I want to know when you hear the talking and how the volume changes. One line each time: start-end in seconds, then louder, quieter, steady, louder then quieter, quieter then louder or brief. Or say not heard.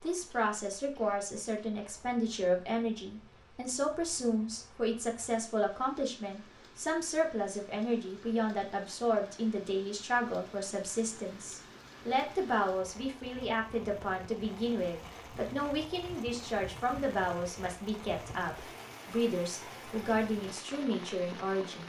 0.0-21.8 steady.